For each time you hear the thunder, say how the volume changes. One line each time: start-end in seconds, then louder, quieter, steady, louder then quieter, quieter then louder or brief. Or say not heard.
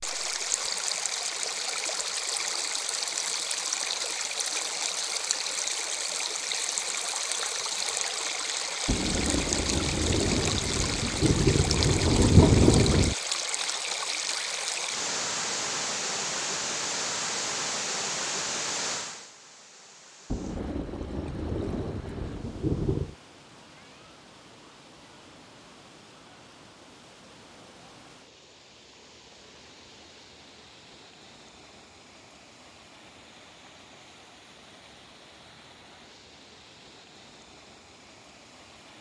8.8-13.2 louder
20.3-23.1 brief.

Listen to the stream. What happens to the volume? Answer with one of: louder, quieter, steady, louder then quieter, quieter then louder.
quieter.